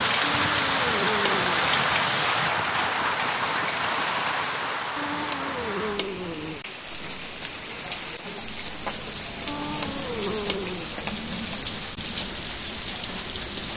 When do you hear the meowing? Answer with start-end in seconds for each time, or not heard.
0.2-1.7, 5.0-6.6, 9.4-10.9.